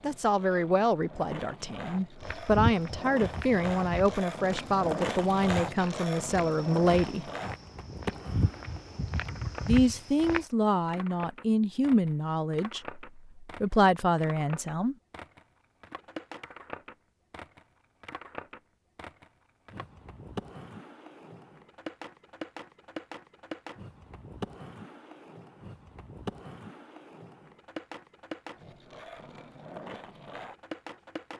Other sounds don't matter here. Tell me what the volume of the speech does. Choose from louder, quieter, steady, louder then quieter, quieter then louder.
steady.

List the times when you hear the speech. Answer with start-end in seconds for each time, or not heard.
0.0-7.2, 9.7-14.9.